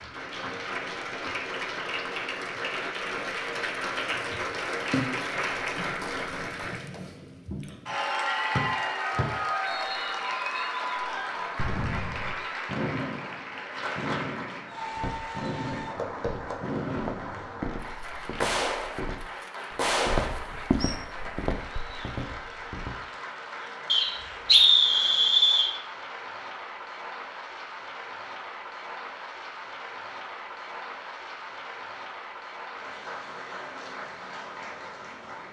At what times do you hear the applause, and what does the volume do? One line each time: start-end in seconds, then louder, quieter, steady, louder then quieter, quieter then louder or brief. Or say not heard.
0.0-35.4 quieter.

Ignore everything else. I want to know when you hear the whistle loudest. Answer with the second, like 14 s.
25 s.